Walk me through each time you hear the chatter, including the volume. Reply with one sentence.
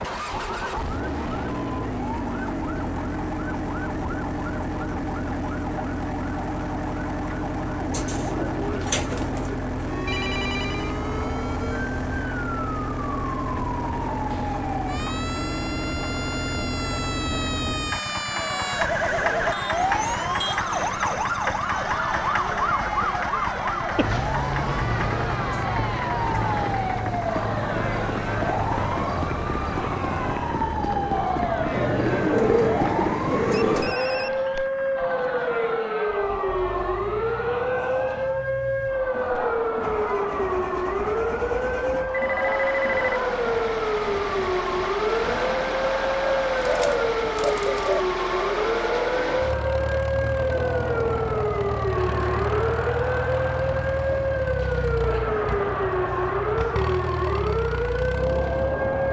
The chatter can be heard from 18.2 to 59.0 s, at a steady volume.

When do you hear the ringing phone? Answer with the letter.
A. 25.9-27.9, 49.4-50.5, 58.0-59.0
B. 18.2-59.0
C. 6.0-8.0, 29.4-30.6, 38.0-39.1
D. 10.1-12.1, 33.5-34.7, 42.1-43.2
D.